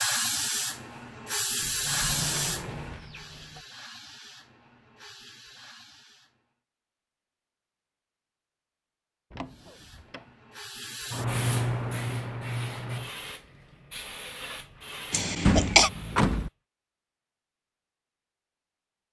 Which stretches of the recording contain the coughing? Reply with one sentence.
You can hear the coughing from 15.1 to 15.9 s.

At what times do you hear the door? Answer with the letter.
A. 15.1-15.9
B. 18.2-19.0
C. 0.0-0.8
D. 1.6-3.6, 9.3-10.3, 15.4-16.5
D.